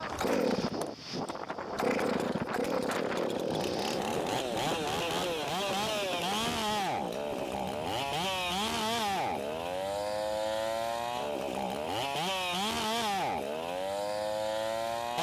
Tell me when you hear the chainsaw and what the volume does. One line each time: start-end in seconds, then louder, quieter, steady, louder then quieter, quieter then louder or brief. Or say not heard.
0.0-15.1 steady.